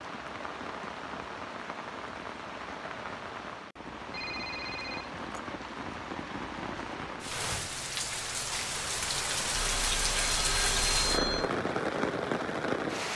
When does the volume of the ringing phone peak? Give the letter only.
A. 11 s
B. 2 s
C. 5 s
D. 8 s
A.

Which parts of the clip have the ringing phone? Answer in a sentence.
The ringing phone can be heard from 4.1 to 5.1 s and from 9.6 to 11.5 s.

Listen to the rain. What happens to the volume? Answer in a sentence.
The volume of the rain goes up.